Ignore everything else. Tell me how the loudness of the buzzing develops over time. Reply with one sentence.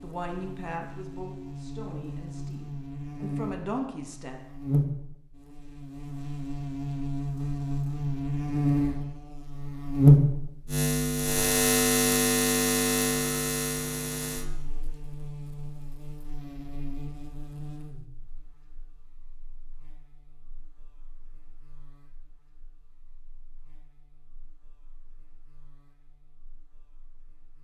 The volume of the buzzing goes up, then down.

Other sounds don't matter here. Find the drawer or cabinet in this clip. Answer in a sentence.
You can't hear the drawer or cabinet here.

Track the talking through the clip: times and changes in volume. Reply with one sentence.
You can hear the talking from 0.0 to 4.4 s, getting quieter then louder.